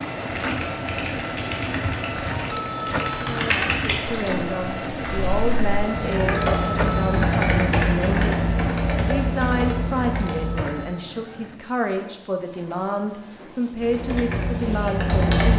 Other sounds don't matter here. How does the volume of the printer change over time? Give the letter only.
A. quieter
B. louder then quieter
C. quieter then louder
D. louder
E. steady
A.